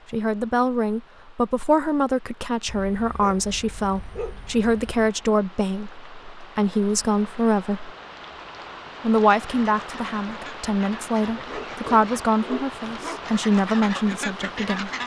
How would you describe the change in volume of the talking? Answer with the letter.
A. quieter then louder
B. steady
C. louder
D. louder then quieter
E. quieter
B.